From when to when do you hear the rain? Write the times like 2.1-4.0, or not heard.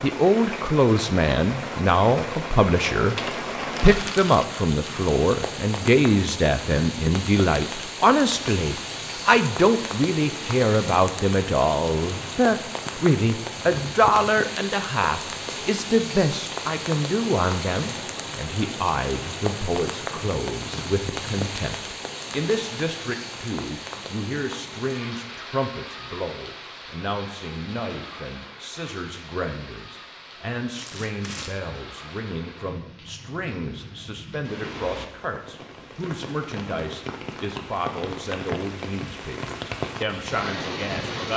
0.0-41.3.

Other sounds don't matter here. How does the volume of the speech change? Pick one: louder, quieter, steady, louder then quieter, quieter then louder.
quieter.